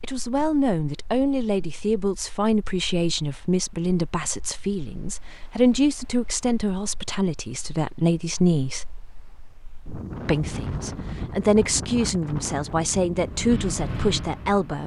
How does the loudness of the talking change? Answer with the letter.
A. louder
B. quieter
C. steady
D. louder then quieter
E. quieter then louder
C.